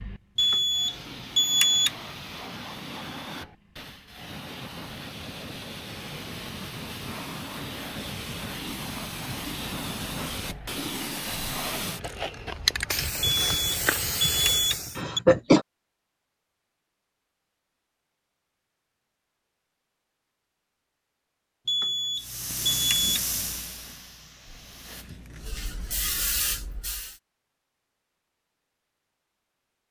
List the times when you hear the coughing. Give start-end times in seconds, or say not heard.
14.9-15.7.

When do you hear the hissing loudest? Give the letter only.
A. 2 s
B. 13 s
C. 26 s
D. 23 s
B.